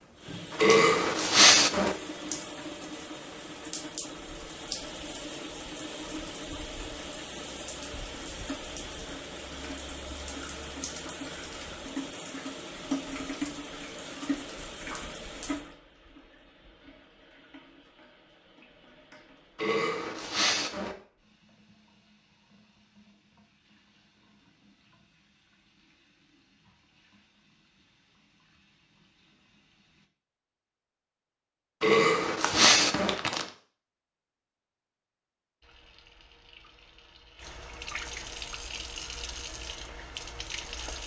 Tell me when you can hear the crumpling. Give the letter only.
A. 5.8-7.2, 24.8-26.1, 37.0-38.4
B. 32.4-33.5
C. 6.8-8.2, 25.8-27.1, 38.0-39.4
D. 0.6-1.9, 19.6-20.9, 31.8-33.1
B.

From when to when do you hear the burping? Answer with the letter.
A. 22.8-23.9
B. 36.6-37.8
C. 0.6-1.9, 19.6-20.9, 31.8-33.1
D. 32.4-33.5
C.